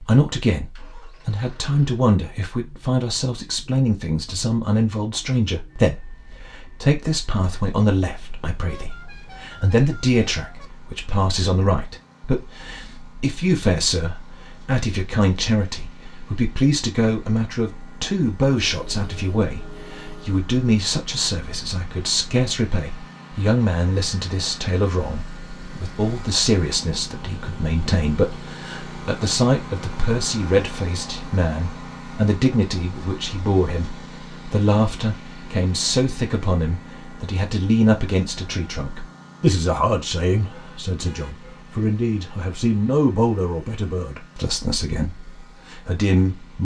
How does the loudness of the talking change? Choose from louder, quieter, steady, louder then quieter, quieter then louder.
steady.